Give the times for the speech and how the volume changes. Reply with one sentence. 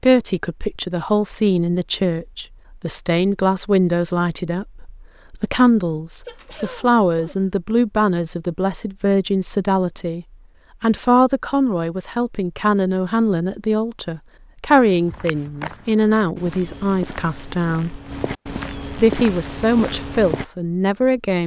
The speech can be heard from 0.0 to 18.0 s, at a steady volume; and briefly from 18.9 to 21.4 s.